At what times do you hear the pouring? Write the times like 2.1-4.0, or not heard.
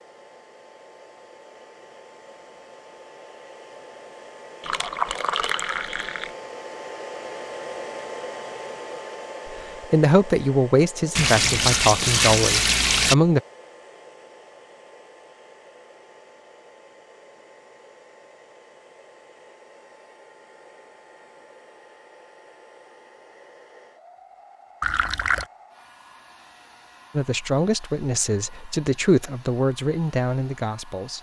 4.6-6.3, 11.2-13.2, 24.8-25.4.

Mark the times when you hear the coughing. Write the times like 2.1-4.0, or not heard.
not heard.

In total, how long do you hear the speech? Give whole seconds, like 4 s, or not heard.
8 s.